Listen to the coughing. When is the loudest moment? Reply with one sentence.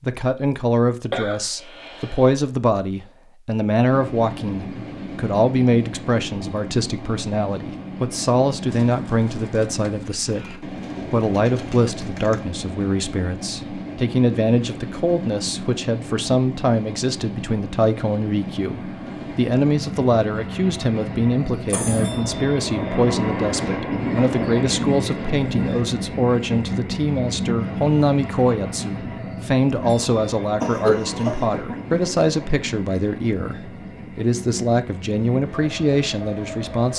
The volume of the coughing peaks at 31 seconds.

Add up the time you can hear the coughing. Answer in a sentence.
You can hear the coughing for 3 seconds altogether.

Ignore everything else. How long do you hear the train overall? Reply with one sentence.
The train can be heard for 33 seconds in total.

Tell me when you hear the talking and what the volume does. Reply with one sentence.
The talking can be heard from 0.0 to 36.9 s, at a steady volume.